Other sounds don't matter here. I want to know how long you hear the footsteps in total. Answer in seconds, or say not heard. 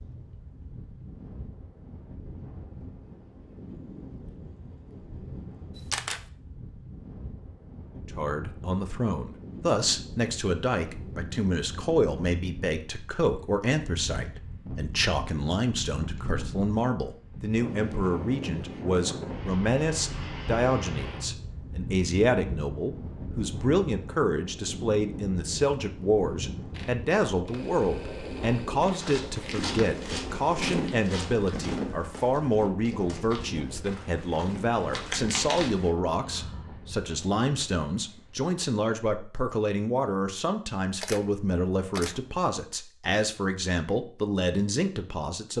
7 s.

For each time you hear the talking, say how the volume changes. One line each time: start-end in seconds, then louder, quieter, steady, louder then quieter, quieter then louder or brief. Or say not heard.
8.0-45.5 steady.